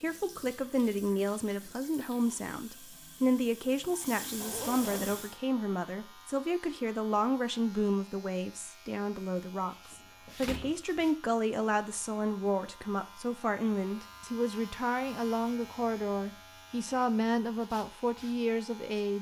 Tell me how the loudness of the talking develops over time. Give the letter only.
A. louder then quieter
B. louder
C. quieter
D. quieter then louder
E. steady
E.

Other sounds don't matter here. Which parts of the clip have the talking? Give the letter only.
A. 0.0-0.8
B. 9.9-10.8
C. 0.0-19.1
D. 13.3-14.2
C.